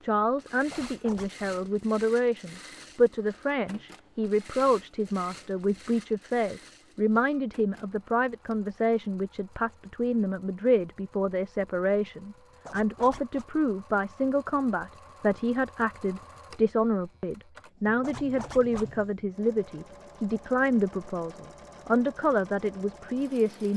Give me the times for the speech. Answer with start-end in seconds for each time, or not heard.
0.0-23.7.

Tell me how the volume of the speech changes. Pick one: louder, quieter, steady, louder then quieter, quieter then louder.
steady.